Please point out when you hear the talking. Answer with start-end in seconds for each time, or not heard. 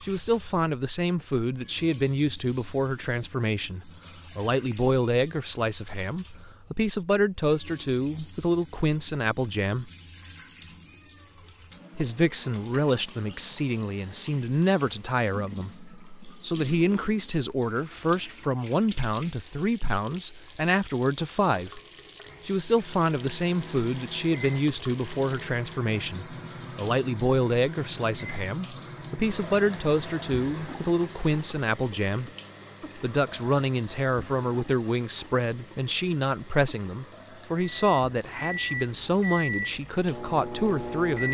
0.0-9.9, 11.9-21.8, 22.4-32.3, 33.0-41.3.